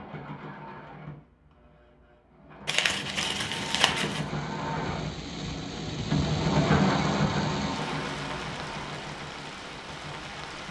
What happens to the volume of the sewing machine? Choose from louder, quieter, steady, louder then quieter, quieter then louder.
louder then quieter.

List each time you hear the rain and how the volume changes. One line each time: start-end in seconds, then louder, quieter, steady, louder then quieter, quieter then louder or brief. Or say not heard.
2.9-10.6 louder then quieter.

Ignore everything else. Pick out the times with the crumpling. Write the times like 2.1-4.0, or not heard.
2.6-4.2.